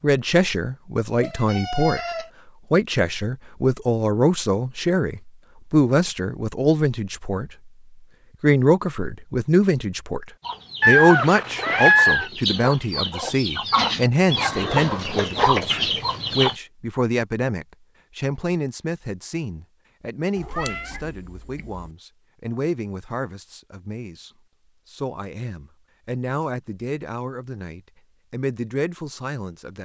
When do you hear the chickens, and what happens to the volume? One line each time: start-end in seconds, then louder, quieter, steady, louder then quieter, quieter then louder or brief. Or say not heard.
10.4-16.6 louder.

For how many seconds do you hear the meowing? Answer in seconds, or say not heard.
4 s.